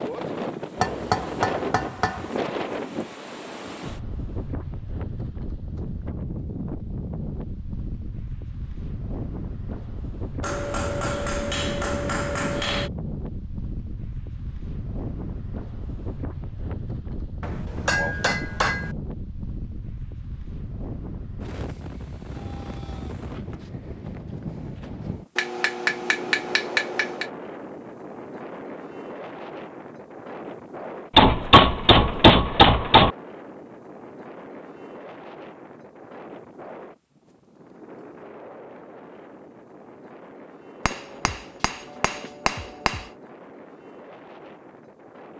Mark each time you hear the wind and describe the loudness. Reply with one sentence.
You can hear the wind from 0.0 to 45.3 s, getting quieter.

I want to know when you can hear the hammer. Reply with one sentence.
You can hear the hammer from 0.8 to 2.2 s, from 10.4 to 12.9 s, from 17.4 to 18.9 s, from 25.4 to 27.2 s, from 31.1 to 33.1 s and from 40.9 to 43.0 s.